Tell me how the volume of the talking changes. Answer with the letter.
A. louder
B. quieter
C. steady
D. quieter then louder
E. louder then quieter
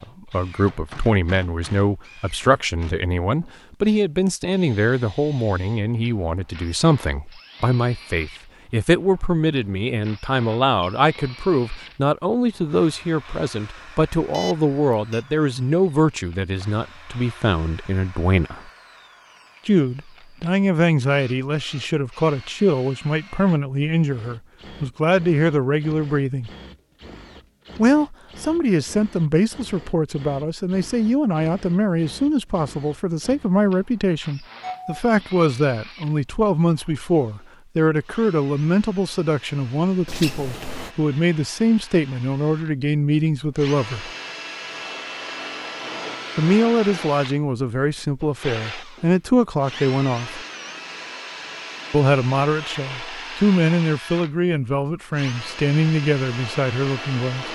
C.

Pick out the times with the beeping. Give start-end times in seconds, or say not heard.
14.3-15.2, 34.6-35.0, 40.0-40.9.